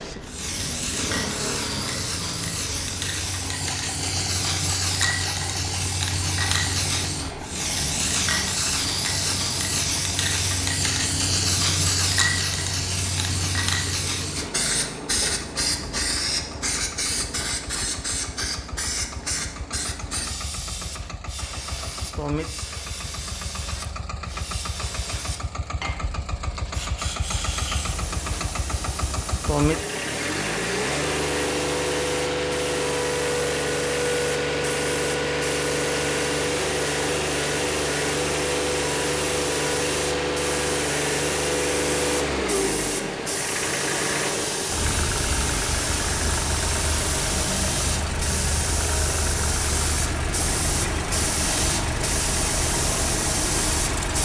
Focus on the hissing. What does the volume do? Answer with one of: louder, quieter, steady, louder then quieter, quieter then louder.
quieter then louder.